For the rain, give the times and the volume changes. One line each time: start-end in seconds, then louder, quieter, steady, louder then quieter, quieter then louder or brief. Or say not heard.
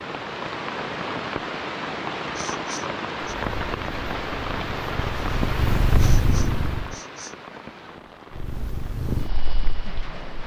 0.0-10.4 quieter.